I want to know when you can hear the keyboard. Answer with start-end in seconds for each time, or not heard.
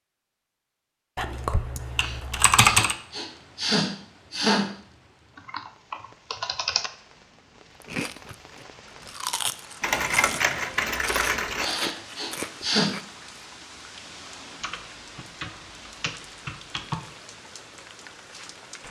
1.1-3.0, 5.3-6.9, 9.8-11.7, 14.6-17.1.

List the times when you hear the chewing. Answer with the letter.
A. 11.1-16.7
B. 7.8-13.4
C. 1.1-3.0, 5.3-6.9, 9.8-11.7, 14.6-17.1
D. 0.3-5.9
B.